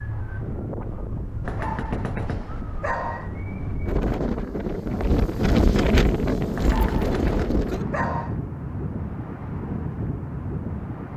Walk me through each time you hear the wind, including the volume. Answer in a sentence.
You can hear the wind from 0.0 to 11.1 s, getting louder then quieter.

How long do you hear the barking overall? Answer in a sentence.
The barking can be heard for 4 seconds in total.